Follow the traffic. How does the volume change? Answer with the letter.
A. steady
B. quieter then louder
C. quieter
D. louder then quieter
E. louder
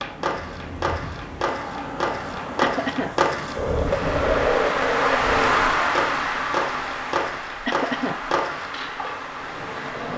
D.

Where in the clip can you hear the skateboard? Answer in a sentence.
You can hear the skateboard from 0.0 to 10.1 s.